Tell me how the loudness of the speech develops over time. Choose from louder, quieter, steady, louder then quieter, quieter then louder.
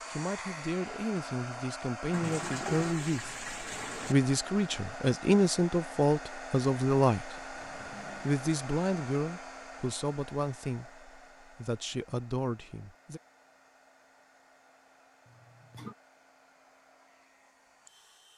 louder then quieter.